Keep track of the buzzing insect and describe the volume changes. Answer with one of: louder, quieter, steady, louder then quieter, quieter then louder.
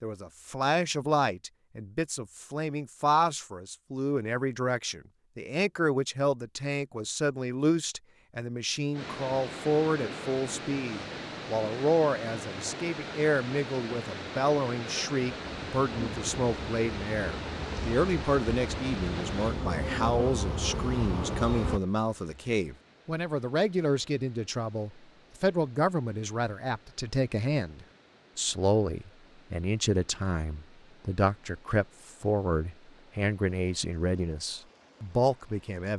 louder.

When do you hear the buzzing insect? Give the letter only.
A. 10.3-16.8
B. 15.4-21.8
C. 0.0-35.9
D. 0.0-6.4
B.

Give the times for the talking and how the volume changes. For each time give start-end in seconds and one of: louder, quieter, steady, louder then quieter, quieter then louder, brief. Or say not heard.
0.0-35.9 steady.